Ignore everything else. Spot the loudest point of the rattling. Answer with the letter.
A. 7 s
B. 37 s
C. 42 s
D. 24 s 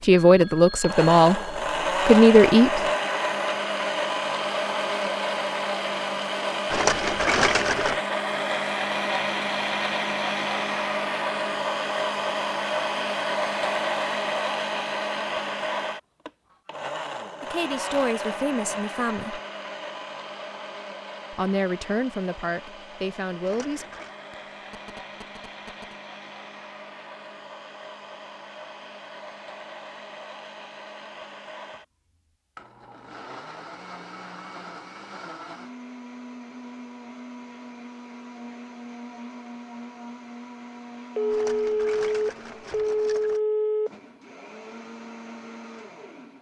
A.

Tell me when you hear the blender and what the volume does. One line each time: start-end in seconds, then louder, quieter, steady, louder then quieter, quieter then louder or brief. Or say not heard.
0.0-46.3 quieter.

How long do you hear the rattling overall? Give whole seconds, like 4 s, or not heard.
4 s.